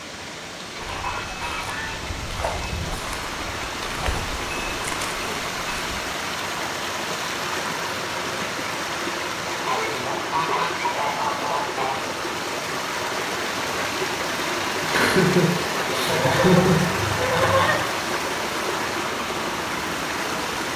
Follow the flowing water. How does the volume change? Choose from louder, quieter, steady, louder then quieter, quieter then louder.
louder.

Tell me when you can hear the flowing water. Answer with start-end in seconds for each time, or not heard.
0.0-20.7.